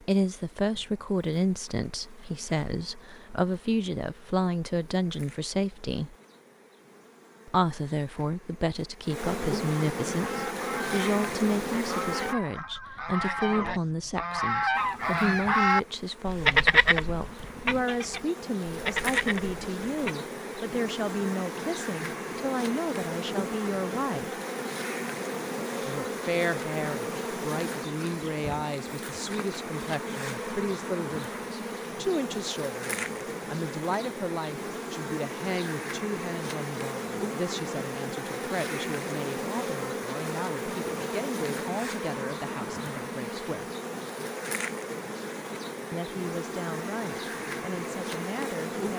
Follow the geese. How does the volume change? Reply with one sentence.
The loudness of the geese goes up, then down.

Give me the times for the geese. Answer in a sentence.
The geese can be heard from 10.1 to 20.1 s.